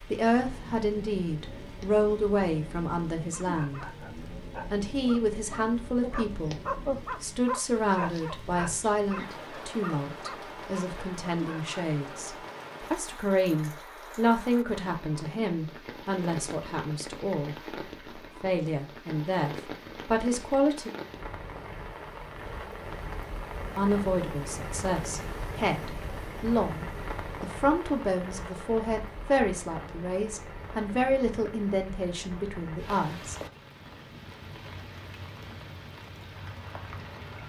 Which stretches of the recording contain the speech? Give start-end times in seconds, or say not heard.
0.0-3.9, 4.7-6.5, 7.2-17.6, 18.4-20.9, 23.8-33.4.